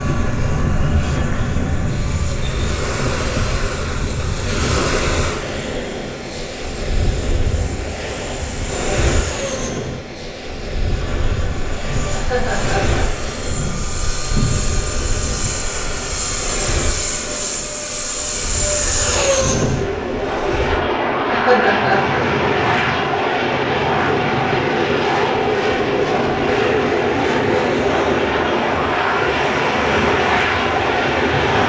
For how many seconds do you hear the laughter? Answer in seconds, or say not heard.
2 s.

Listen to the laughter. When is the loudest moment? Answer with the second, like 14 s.
22 s.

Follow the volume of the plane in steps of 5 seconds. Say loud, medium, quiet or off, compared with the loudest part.
quiet, quiet, medium, loud, loud, loud, loud.